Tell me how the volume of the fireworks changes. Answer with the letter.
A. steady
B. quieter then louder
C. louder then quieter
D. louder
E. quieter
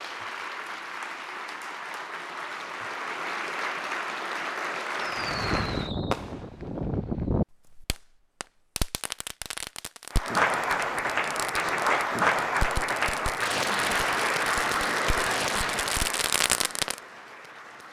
B.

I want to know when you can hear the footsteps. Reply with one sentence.
You can't hear the footsteps here.